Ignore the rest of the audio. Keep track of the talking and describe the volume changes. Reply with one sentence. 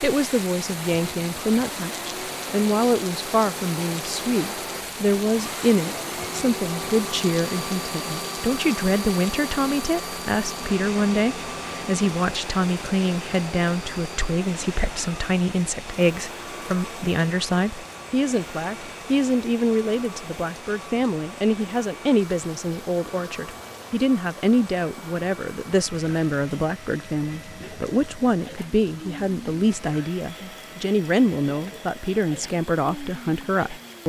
The loudness of the talking stays about the same.